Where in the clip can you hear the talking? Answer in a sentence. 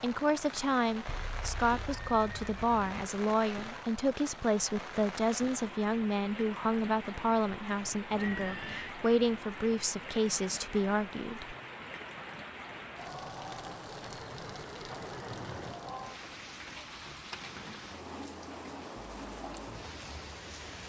You can hear the talking from 0.0 to 11.6 s.